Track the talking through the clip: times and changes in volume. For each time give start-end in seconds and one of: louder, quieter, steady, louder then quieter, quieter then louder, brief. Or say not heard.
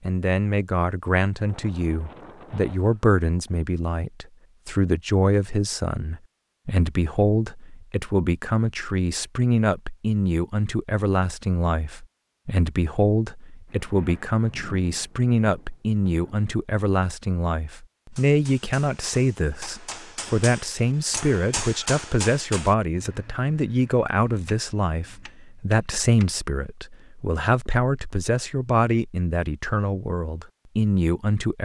0.0-31.6 steady.